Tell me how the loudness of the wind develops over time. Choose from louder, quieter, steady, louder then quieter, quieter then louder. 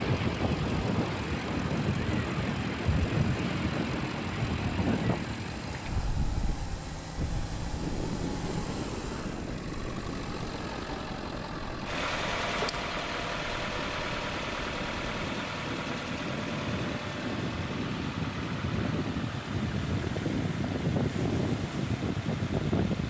quieter then louder.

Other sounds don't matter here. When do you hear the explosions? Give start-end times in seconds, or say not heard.
not heard.